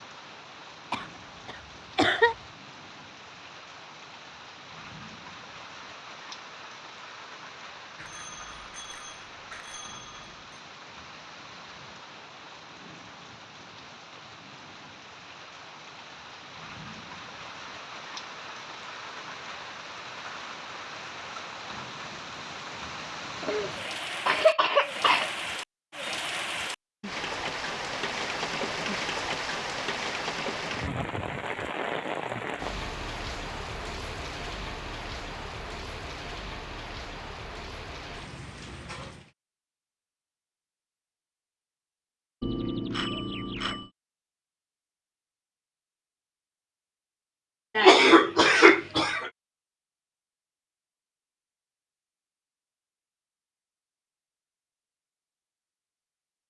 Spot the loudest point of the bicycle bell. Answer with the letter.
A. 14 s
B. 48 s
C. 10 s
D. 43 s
D.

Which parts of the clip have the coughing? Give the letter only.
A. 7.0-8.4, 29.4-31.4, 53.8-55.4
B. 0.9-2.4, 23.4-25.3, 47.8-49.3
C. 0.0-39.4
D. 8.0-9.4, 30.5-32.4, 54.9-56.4
B.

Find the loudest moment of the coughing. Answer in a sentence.
The volume of the coughing peaks at 48 seconds.